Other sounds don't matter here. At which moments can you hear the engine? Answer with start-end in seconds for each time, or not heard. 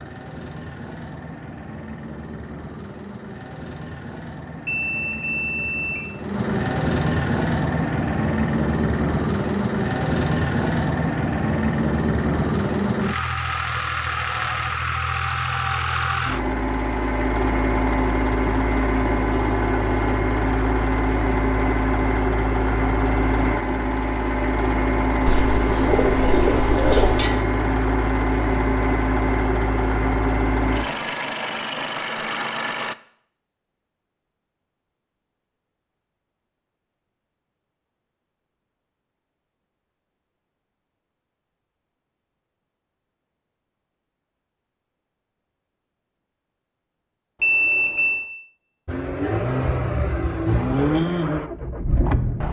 0.0-33.0, 48.9-52.4.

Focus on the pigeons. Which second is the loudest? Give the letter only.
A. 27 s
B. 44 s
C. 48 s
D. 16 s
A.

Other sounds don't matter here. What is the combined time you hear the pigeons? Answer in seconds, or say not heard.
2 s.